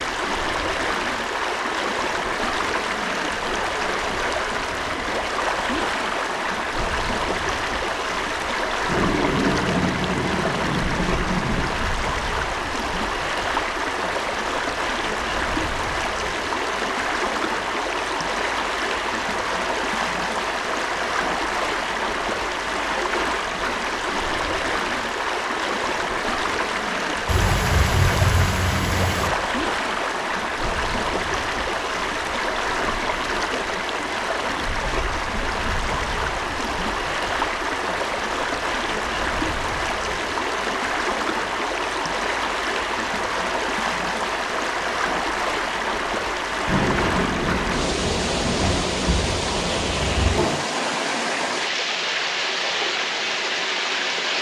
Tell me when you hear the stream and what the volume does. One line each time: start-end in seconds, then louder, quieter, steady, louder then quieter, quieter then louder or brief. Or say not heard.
0.0-54.3 steady.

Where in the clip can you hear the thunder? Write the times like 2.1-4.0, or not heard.
8.8-11.7, 27.2-29.3, 46.6-50.6.